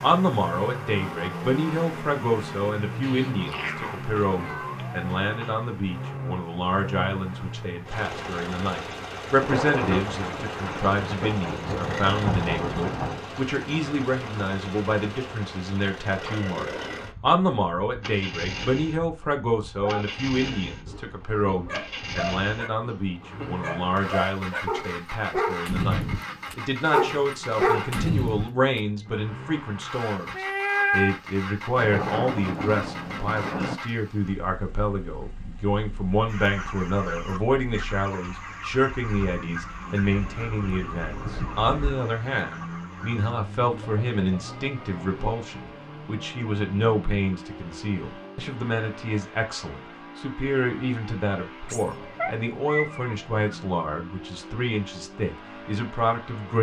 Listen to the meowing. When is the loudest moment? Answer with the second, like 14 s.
31 s.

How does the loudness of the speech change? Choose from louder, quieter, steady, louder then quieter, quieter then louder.
steady.